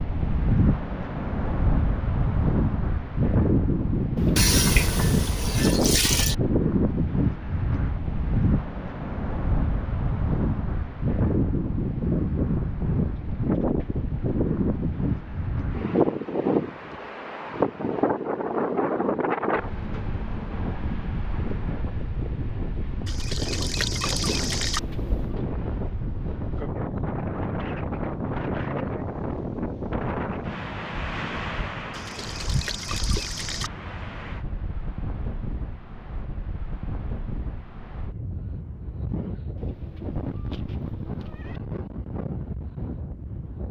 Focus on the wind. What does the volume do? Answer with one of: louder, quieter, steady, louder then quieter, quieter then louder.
quieter.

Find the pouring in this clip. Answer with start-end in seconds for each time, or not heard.
4.3-6.3, 23.1-24.8, 31.9-33.7.